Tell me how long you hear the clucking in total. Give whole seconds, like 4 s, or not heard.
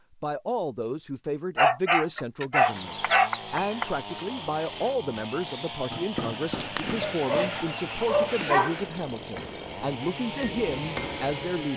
4 s.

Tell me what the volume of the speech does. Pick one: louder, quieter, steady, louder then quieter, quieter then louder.
steady.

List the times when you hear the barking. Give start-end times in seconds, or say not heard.
1.6-3.3, 7.0-9.4.